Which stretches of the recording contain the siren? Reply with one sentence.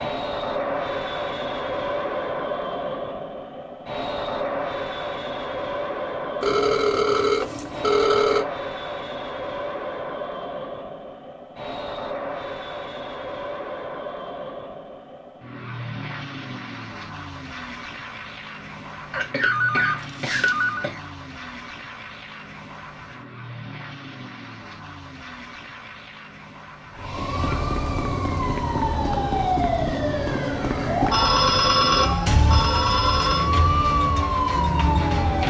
You can hear the siren from 26.9 to 35.4 s.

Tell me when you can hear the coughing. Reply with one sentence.
The coughing can be heard from 19.1 to 21.1 s.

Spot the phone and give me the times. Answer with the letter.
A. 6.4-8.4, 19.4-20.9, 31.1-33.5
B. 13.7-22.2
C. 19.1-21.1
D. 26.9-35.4
A.